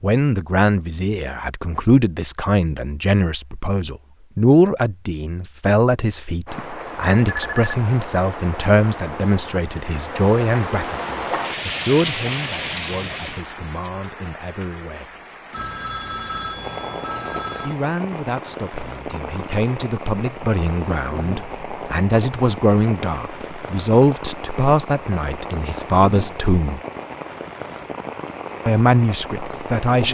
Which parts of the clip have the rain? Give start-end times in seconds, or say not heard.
6.5-30.0.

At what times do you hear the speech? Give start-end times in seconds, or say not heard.
0.0-15.2, 17.6-26.8, 28.6-30.0.